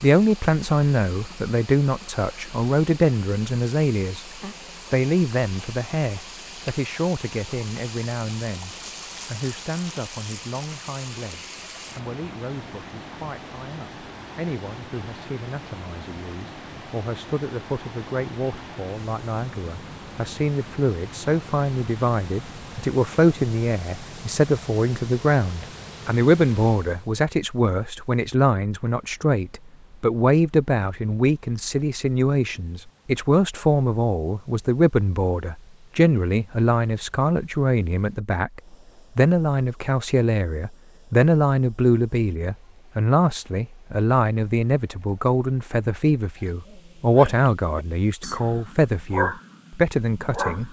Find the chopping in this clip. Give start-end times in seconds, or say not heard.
not heard.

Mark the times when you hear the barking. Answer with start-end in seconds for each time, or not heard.
46.4-50.6.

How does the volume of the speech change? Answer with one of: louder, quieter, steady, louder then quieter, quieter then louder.
quieter then louder.